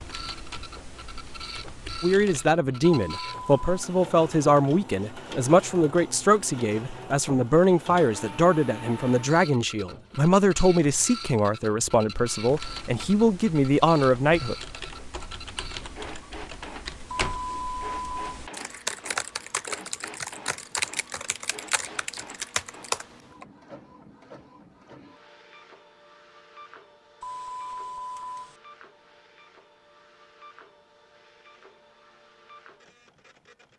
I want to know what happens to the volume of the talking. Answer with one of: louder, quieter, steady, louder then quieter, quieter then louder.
steady.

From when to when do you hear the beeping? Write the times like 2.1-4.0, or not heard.
2.9-3.8, 17.1-18.2, 27.2-28.6.